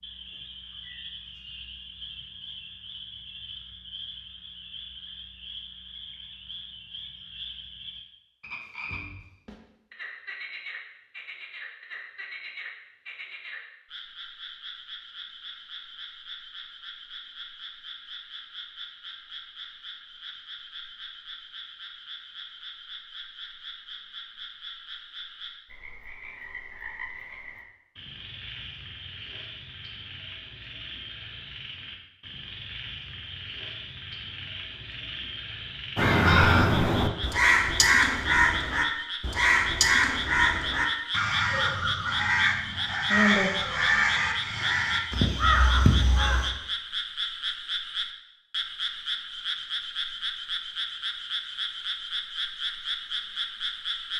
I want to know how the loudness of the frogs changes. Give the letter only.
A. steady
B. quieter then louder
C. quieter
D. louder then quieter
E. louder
E.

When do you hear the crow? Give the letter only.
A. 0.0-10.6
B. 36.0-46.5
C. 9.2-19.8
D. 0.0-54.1
B.